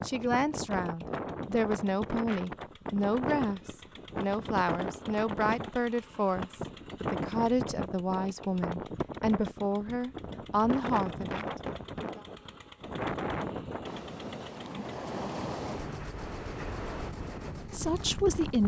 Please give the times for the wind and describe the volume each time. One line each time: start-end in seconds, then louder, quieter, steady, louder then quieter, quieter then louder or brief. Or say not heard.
0.0-18.6 steady.